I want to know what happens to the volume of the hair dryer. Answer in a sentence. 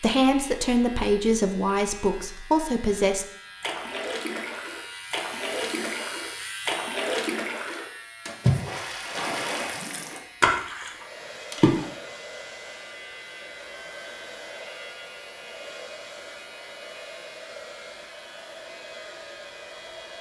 The volume of the hair dryer stays about the same.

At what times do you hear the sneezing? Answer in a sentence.
The sneezing can't be heard in this clip.